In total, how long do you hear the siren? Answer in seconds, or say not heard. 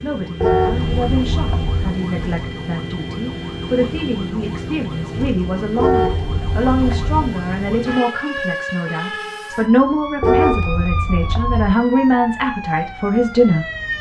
14 s.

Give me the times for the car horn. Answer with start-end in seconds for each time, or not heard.
0.4-1.9, 5.8-7.2, 10.2-11.8.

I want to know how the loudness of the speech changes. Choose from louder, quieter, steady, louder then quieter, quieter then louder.
louder.